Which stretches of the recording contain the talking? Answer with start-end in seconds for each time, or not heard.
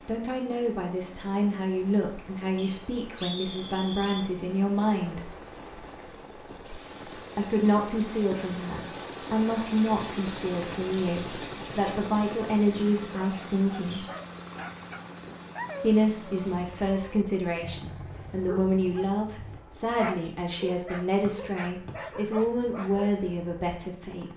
0.1-5.3, 7.3-14.1, 15.8-24.3.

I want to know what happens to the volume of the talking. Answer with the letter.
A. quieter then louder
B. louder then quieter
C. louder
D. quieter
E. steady
E.